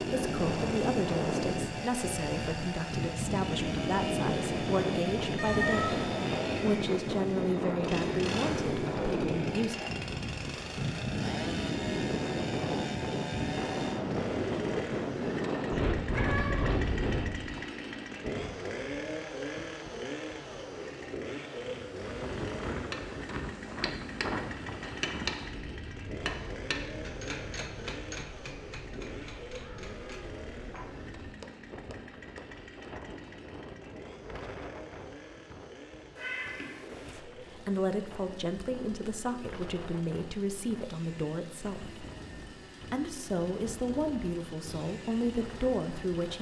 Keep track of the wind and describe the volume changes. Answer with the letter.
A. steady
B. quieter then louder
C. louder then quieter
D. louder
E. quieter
E.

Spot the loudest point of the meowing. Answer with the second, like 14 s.
6 s.